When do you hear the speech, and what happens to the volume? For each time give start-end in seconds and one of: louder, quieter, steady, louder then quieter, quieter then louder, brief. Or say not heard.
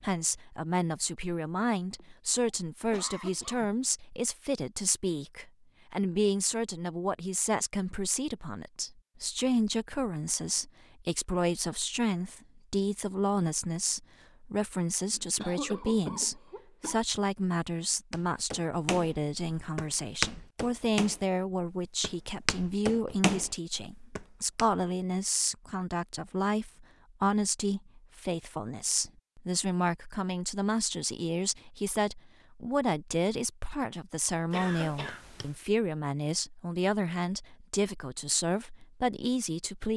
0.0-39.9 steady.